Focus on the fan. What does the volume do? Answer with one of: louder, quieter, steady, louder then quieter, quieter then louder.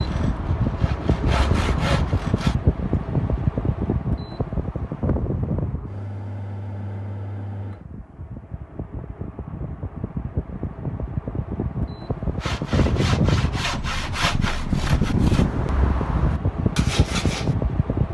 quieter then louder.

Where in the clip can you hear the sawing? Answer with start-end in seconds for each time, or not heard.
0.0-2.5, 12.4-17.6.